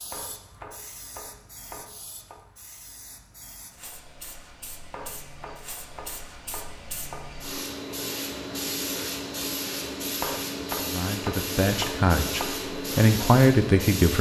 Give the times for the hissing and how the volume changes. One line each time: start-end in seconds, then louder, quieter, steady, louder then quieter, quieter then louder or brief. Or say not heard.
0.0-14.1 louder.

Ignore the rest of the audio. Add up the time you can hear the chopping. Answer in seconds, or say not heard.
7 s.